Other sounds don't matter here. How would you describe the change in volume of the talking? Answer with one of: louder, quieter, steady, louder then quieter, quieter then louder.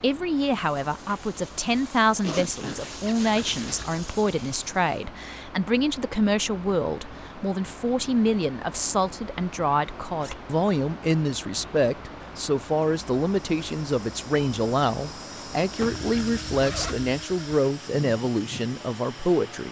steady.